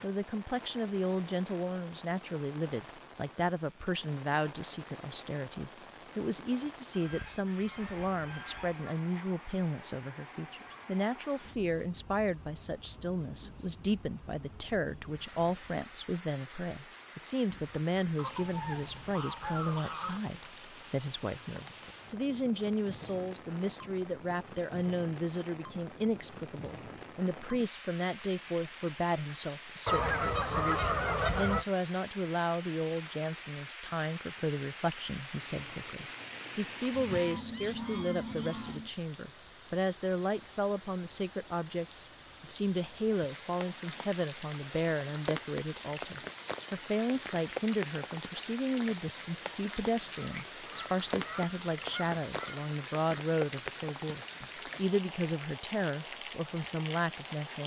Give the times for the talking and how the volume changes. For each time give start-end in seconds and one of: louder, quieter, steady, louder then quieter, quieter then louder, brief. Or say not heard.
0.0-57.6 steady.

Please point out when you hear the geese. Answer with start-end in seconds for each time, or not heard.
6.9-8.8, 18.1-20.2, 29.9-31.6, 36.9-38.9, 50.1-52.7.